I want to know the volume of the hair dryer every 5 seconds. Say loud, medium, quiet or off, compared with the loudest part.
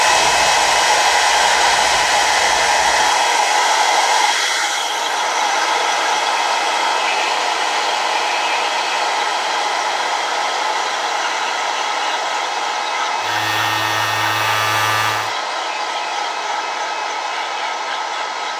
loud, loud, medium, medium.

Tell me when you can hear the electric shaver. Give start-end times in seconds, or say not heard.
0.0-3.3, 13.2-15.3.